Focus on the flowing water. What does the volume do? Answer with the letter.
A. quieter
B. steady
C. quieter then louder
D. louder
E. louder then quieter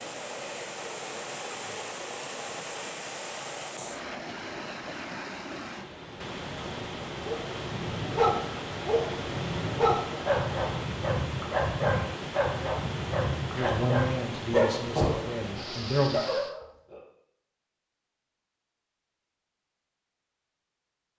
B.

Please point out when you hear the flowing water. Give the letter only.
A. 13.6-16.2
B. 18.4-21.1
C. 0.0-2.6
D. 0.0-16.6
D.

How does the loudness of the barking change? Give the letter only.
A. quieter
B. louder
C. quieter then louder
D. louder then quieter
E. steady
E.